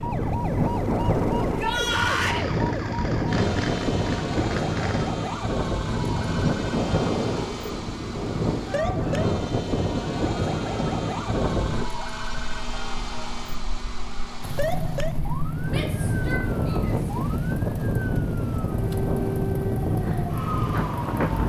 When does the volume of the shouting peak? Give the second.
2 s.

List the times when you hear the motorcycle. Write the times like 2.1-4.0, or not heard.
0.0-5.1, 14.4-21.4.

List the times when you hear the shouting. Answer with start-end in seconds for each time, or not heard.
1.4-2.5, 8.7-9.4, 15.7-17.1.